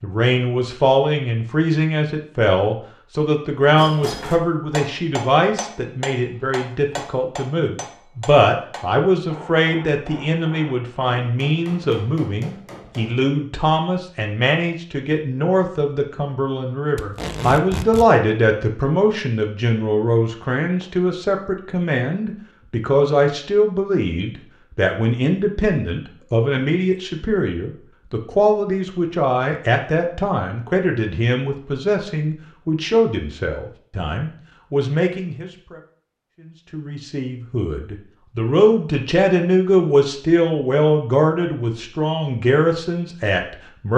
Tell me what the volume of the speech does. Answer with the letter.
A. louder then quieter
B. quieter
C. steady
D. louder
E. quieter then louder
C.